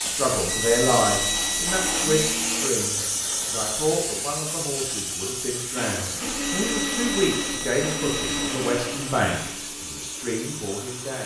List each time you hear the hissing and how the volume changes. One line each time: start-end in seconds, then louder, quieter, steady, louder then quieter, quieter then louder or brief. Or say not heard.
0.0-11.2 quieter.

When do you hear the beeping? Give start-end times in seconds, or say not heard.
0.3-2.1, 6.3-8.5.